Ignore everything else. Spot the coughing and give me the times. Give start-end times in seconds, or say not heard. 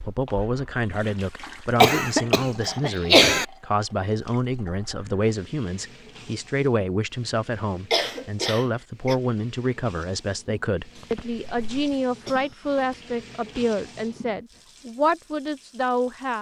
1.8-3.5, 7.9-9.2, 10.9-12.9.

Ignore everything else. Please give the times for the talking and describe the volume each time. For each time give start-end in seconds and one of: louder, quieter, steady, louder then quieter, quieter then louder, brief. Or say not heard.
0.0-16.3 steady.